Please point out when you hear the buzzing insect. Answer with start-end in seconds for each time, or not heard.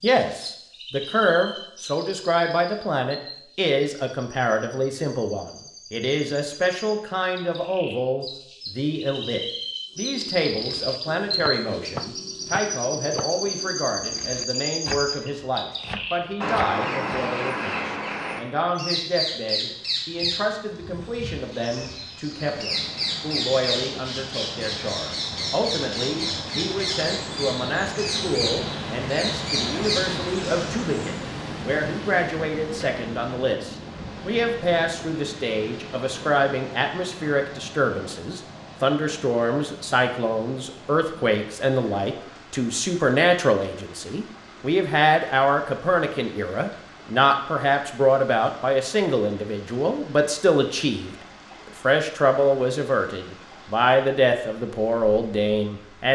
not heard.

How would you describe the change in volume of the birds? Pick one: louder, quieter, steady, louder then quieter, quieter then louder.
louder.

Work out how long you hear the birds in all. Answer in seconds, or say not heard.
31 s.